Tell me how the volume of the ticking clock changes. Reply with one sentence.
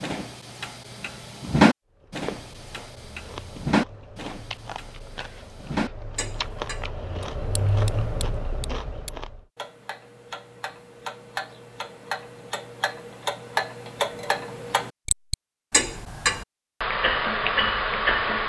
The loudness of the ticking clock goes down, then up.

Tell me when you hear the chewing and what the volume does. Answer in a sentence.
The chewing can be heard from 1.9 to 9.4 s, getting louder.